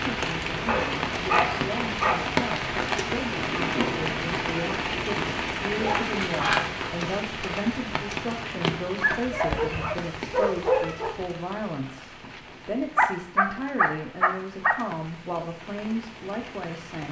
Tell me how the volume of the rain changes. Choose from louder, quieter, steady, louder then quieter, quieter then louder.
quieter.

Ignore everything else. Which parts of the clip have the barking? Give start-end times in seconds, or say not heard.
0.7-2.2, 5.8-6.7, 9.0-11.2, 12.9-14.8.